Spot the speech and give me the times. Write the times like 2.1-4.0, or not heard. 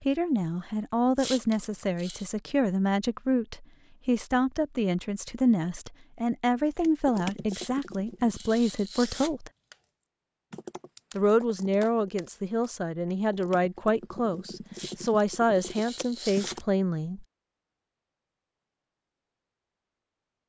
0.0-9.5, 11.2-17.2.